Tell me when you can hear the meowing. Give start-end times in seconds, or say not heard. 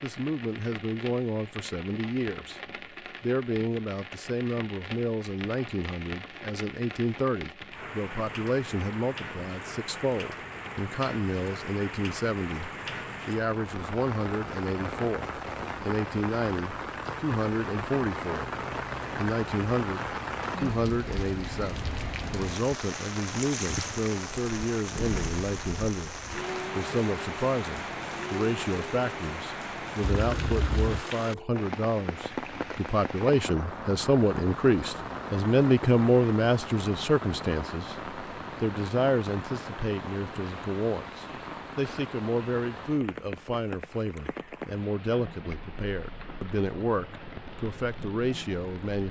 not heard.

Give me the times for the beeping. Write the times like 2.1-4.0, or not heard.
30.0-31.1.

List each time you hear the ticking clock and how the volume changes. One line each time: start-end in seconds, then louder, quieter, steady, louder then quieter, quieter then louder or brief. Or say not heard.
not heard.